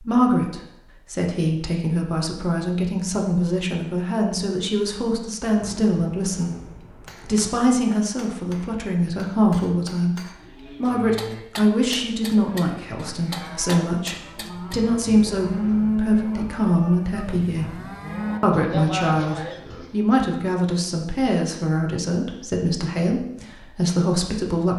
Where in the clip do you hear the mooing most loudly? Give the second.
16 s.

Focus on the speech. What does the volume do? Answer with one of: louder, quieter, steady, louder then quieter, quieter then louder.
steady.